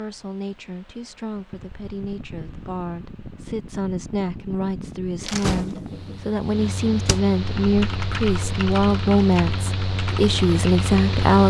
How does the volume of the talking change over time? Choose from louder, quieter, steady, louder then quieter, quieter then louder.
louder.